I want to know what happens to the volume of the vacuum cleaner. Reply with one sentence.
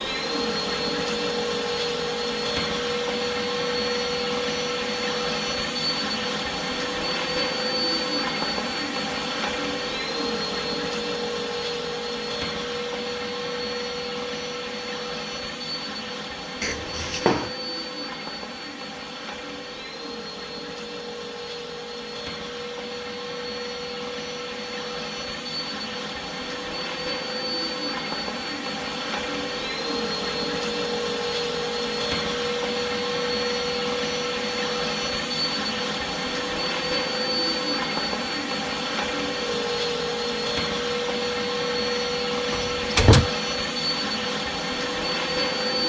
The loudness of the vacuum cleaner goes down, then up.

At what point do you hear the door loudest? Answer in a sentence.
The volume of the door peaks at 43 seconds.